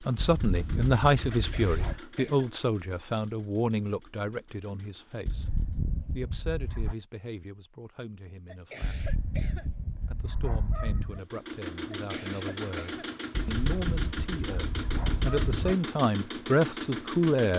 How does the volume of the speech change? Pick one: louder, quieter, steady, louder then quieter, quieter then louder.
quieter then louder.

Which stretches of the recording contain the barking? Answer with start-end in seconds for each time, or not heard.
0.1-2.0, 5.2-7.0, 8.8-11.2, 13.3-15.8.